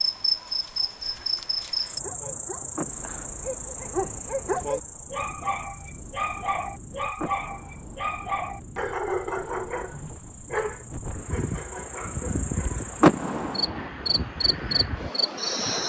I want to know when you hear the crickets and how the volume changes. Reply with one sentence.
The crickets can be heard from 0.0 to 15.8 s, getting quieter then louder.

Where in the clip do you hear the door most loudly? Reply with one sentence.
The loudest moment of the door is at 13 seconds.